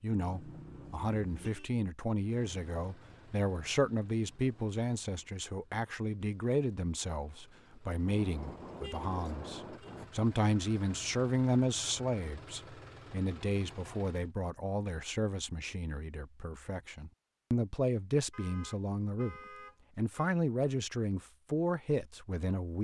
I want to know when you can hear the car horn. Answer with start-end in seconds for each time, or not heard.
0.1-1.7, 8.1-10.1, 18.3-20.3.